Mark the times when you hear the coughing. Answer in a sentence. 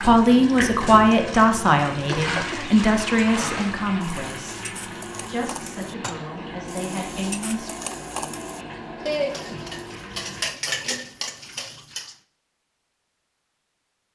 You can hear the coughing from 2.0 to 2.7 s.